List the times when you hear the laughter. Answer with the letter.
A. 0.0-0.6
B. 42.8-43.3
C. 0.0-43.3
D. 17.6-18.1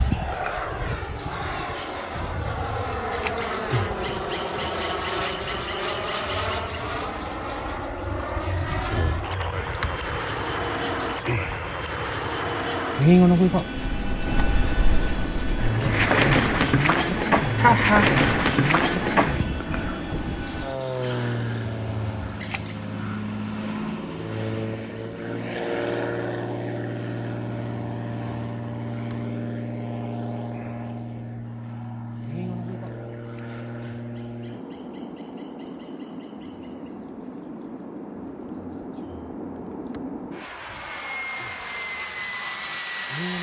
D.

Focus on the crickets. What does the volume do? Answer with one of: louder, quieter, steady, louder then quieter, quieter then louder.
quieter.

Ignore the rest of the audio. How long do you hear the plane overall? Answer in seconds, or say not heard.
43 s.